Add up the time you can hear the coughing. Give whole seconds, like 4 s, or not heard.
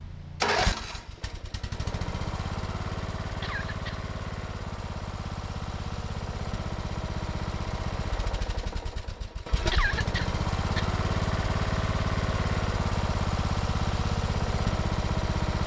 2 s.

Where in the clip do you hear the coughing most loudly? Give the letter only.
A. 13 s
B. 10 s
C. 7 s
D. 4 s
B.